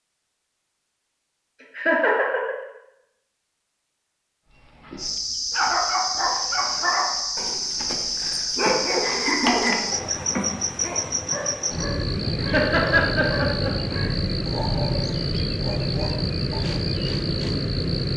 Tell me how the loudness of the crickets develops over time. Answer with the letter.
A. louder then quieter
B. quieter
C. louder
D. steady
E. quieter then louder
D.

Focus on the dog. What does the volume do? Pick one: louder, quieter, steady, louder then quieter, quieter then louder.
quieter.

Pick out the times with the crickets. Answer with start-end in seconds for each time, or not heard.
5.0-18.1.